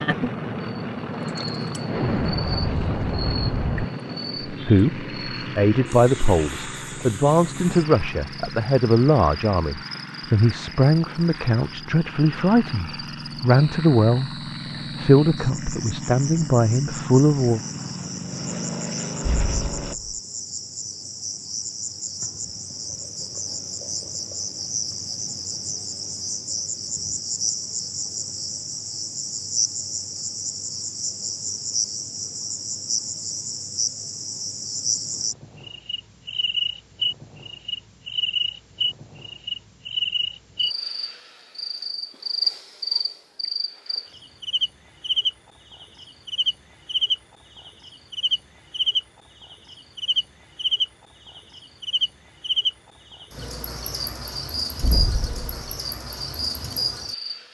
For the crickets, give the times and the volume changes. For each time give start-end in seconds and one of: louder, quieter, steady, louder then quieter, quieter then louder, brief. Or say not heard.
0.0-57.4 louder.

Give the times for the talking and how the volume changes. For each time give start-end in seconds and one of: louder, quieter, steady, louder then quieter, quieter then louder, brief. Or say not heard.
4.5-17.6 steady.